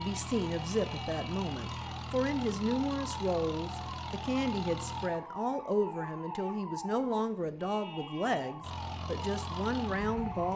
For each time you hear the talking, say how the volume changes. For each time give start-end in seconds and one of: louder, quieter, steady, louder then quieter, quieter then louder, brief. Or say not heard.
0.0-10.5 steady.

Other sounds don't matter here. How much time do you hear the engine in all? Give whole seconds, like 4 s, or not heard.
7 s.